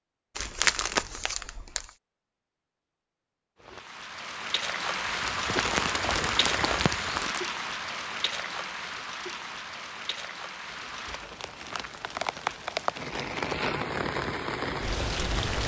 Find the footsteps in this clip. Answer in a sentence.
The footsteps can be heard from 5.0 to 7.3 s.